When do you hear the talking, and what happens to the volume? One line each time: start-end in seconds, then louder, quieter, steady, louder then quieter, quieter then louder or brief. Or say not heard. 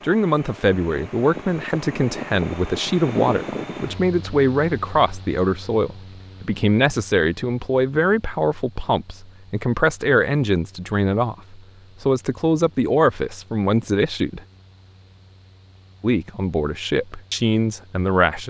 0.0-14.4 steady
16.0-18.4 brief.